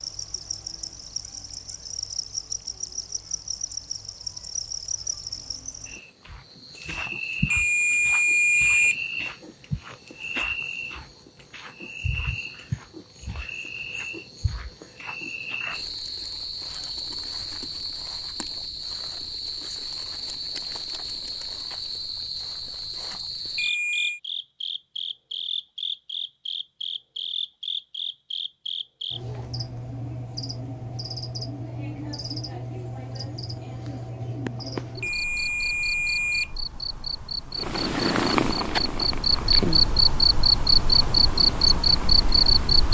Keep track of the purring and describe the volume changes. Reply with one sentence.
The loudness of the purring goes down.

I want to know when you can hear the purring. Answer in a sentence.
You can hear the purring from 37.5 to 42.9 s.